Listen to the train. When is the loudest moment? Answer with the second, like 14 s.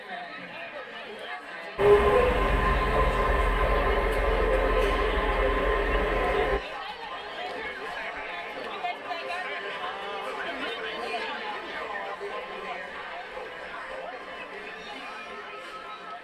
2 s.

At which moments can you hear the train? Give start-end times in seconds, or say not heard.
1.8-6.6.